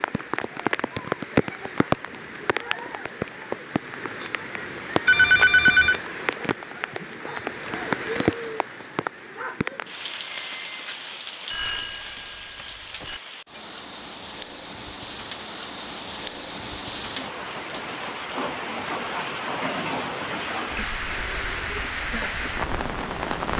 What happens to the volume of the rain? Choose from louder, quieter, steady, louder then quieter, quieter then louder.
quieter then louder.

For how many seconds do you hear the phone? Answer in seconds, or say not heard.
3 s.